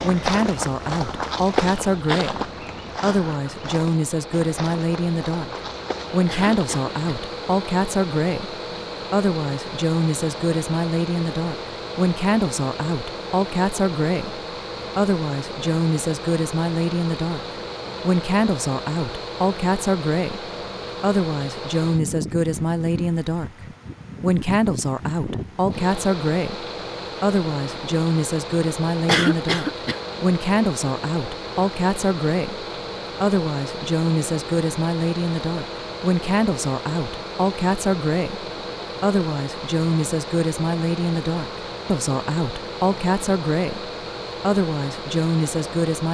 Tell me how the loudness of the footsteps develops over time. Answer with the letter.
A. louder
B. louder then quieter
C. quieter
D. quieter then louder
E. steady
C.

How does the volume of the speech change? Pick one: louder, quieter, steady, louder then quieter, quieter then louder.
steady.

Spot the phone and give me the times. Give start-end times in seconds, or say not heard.
not heard.